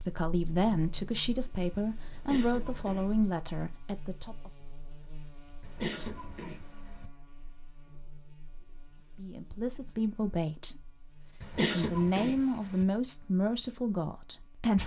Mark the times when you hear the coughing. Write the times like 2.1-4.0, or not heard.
2.1-3.1, 5.6-7.1, 11.4-12.8.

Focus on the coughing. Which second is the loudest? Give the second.
12 s.